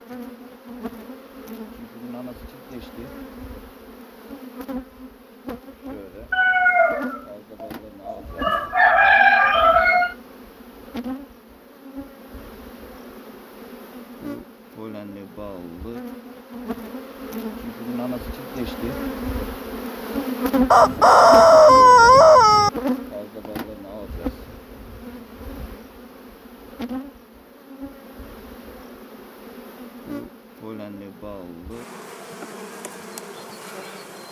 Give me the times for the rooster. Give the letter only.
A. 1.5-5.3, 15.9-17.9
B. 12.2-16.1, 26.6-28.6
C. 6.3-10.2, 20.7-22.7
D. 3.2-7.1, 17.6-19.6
C.